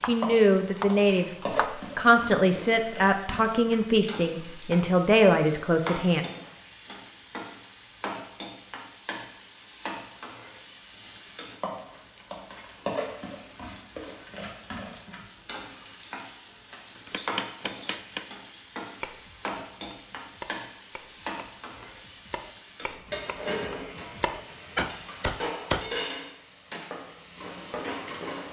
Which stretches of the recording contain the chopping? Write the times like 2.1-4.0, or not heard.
0.0-1.8, 17.1-25.9.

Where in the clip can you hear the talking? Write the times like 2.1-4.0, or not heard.
0.0-1.4, 1.9-6.2.